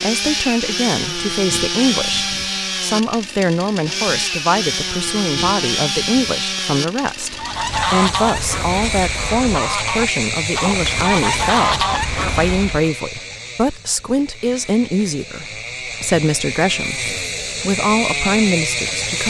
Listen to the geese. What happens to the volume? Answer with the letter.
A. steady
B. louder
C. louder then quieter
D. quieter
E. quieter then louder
E.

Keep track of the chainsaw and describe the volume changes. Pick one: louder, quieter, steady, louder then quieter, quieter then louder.
quieter then louder.